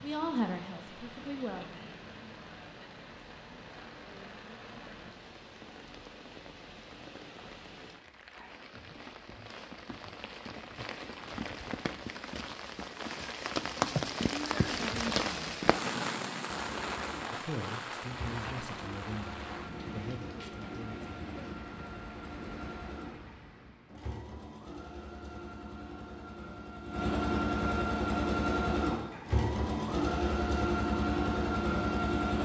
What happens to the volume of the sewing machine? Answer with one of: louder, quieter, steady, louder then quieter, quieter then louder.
louder.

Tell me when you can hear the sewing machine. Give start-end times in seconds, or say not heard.
16.4-32.4.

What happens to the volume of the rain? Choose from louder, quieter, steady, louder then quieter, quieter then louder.
louder then quieter.